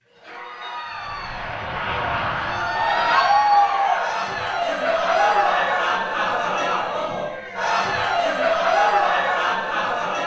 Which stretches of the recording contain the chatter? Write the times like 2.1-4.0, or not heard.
0.1-10.2.